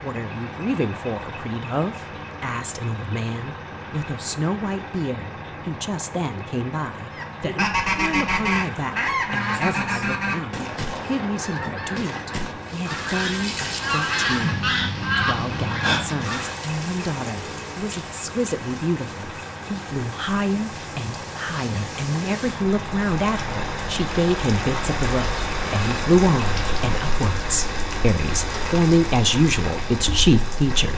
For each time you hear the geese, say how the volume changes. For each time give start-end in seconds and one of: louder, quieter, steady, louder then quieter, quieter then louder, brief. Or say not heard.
7.2-16.6 quieter then louder.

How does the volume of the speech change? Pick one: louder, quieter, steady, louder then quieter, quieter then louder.
louder.